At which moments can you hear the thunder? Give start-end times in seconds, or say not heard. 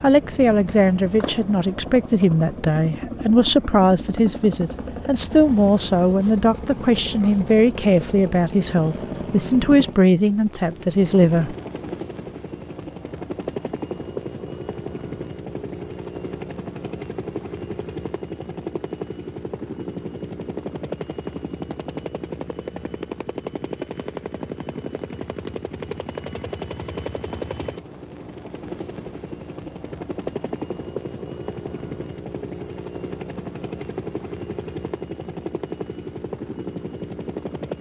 not heard.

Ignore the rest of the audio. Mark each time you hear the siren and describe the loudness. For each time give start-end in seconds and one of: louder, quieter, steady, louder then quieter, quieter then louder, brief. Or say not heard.
not heard.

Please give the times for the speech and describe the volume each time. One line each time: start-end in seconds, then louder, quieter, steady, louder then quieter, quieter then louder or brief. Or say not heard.
0.0-11.6 steady.